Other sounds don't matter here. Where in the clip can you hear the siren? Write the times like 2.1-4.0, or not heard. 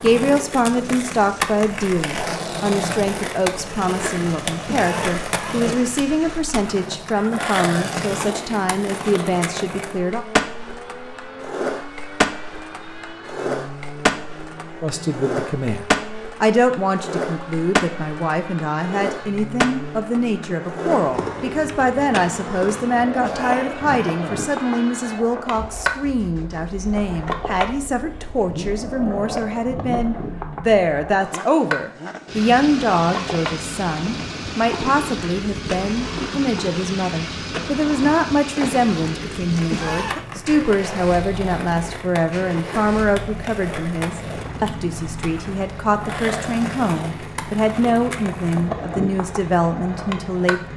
not heard.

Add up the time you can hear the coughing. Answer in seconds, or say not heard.
3 s.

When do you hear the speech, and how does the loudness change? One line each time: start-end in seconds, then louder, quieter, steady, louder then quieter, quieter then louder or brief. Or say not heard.
0.0-10.2 steady
14.8-50.7 steady.